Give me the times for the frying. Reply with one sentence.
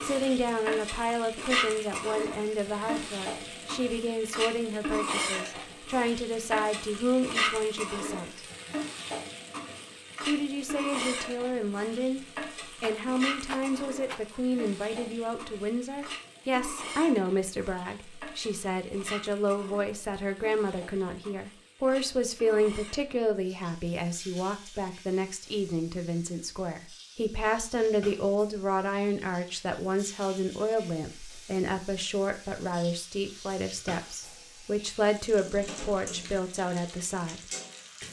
You can hear the frying from 0.0 to 38.0 s.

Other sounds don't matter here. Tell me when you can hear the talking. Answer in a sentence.
The talking can be heard from 0.0 to 8.4 s, from 10.2 to 12.2 s and from 12.8 to 37.4 s.